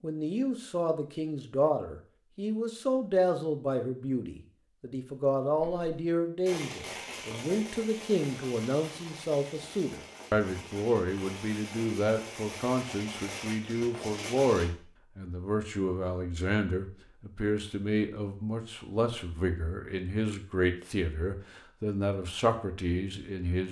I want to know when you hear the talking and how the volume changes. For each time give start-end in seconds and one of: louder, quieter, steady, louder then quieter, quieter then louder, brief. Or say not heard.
0.0-23.6 steady.